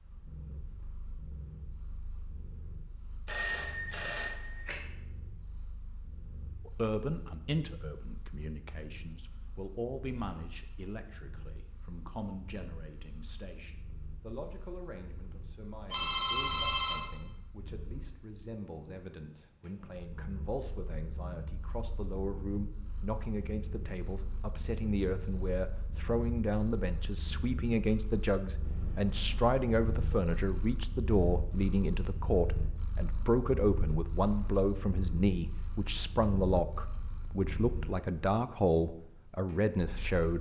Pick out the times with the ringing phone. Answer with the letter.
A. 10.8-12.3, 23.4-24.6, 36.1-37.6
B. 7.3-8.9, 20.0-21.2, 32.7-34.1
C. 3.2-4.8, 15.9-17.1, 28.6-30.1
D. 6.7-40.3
C.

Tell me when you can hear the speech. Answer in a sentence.
You can hear the speech from 6.7 to 40.3 s.